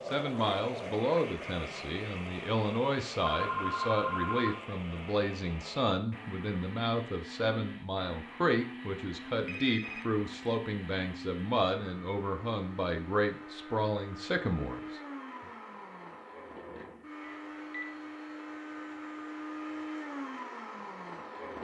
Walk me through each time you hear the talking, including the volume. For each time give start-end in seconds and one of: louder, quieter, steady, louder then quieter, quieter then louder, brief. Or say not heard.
0.1-15.0 steady.